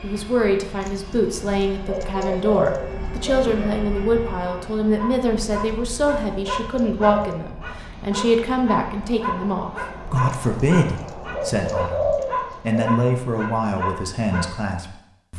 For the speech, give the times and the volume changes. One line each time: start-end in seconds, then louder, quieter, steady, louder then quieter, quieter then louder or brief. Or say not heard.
0.0-15.3 steady.